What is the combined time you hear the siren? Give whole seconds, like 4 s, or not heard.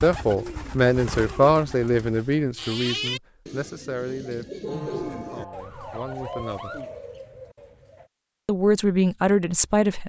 2 s.